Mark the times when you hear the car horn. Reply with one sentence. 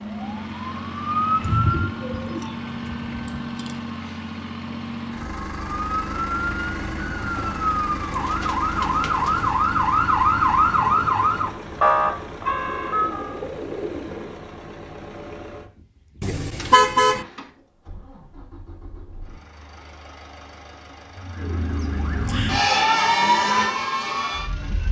The car horn can be heard from 16.2 to 17.2 s.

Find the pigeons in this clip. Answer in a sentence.
You can hear the pigeons from 1.4 to 3.8 s, from 7.2 to 9.6 s, from 12.7 to 14.4 s and from 21.4 to 22.6 s.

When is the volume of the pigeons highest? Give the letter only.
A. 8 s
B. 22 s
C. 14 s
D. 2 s
D.